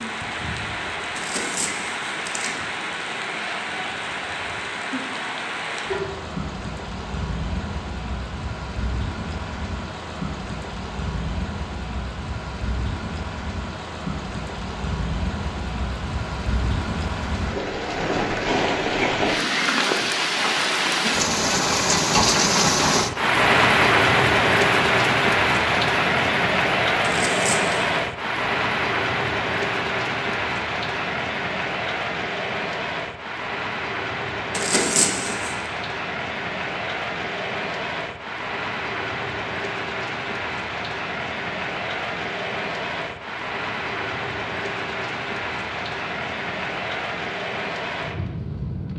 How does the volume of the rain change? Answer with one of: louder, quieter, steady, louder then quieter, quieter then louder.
louder then quieter.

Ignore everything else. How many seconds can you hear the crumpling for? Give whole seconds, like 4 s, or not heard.
3 s.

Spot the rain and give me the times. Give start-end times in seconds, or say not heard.
0.0-48.9.